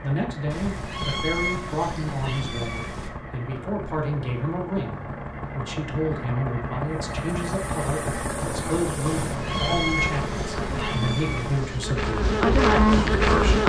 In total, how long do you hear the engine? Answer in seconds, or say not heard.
12 s.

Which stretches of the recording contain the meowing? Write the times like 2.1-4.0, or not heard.
0.5-3.1, 9.1-11.7.